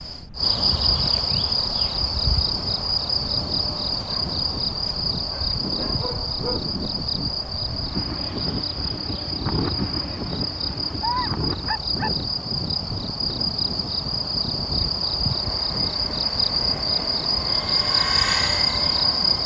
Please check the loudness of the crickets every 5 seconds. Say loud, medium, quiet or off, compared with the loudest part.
loud, medium, medium, loud.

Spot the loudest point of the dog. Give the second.
11 s.